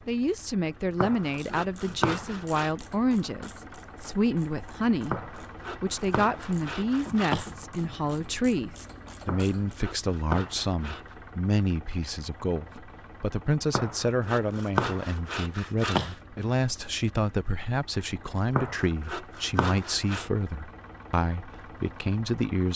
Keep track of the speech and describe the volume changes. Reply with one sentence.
The loudness of the speech stays about the same.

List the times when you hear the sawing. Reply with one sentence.
You can hear the sawing from 0.9 to 2.8 s, from 5.1 to 7.5 s, from 9.2 to 11.2 s, from 13.7 to 16.1 s and from 18.6 to 20.3 s.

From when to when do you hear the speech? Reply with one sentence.
You can hear the speech from 0.1 to 22.7 s.